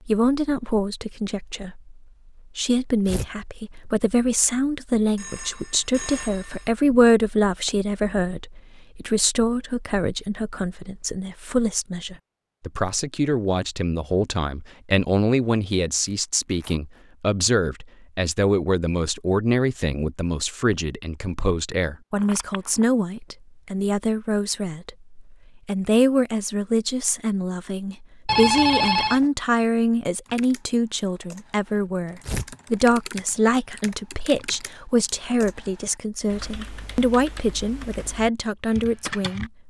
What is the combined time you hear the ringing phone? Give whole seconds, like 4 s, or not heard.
3 s.